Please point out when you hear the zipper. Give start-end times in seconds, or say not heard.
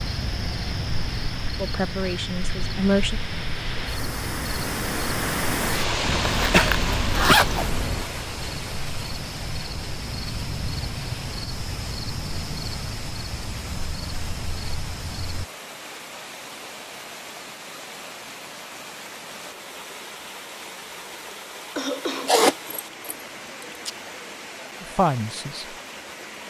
6.2-7.7, 22.2-23.1.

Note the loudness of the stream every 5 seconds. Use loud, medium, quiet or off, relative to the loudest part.
medium, loud, medium, medium, medium, medium.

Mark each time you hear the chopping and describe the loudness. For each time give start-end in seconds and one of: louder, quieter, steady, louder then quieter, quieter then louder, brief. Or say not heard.
not heard.